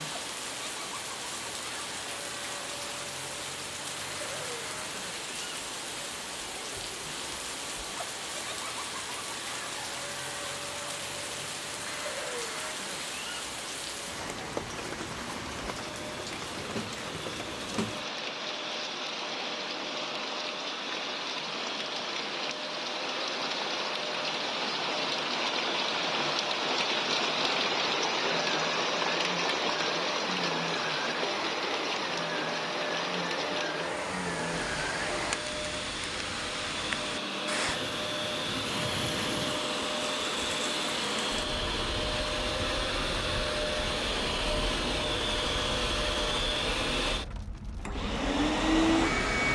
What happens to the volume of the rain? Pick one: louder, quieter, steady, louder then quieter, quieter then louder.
louder then quieter.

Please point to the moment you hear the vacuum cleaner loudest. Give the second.
49 s.